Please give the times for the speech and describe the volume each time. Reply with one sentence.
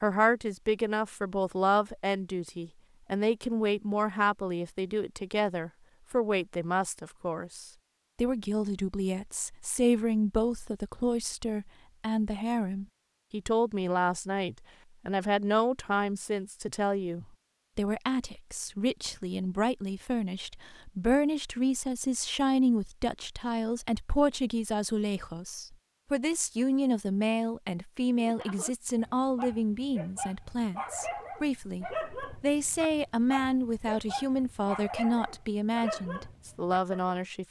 You can hear the speech from 0.0 to 37.4 s, at a steady volume.